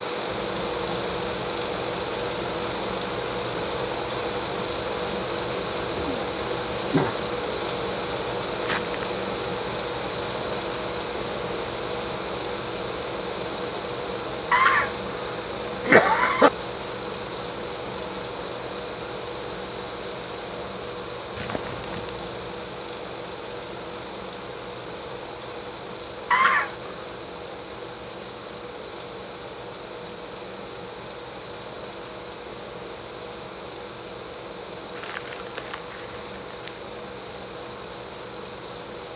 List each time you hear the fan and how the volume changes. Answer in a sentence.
The fan can be heard from 0.0 to 39.1 s, getting quieter.